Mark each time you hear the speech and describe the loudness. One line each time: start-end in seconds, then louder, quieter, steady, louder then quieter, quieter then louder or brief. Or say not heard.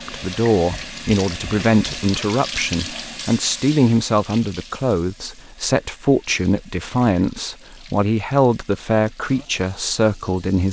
0.1-10.6 steady.